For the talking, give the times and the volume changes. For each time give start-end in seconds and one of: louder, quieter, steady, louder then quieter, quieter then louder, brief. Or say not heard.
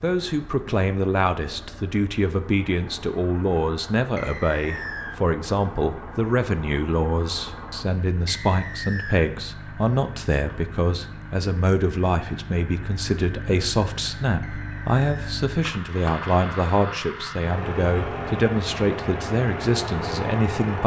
0.0-20.8 steady.